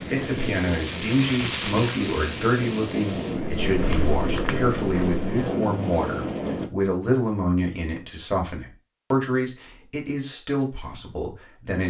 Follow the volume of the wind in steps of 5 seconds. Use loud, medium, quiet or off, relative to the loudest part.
loud, loud, off.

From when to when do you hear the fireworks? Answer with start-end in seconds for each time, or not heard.
0.0-3.4.